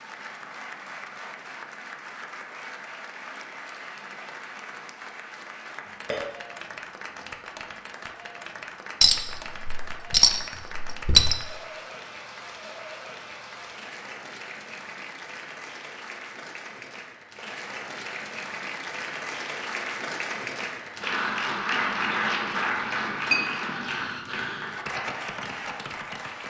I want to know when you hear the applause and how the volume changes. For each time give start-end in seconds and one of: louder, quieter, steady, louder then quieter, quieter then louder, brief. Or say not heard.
0.0-26.4 louder.